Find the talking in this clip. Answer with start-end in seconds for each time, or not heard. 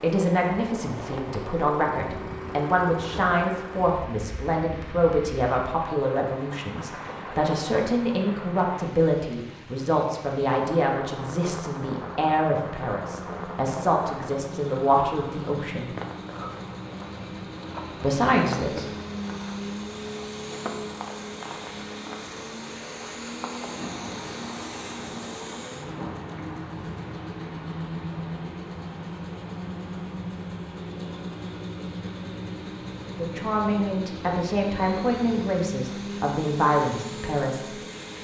0.0-15.9, 18.0-18.9, 33.1-37.8.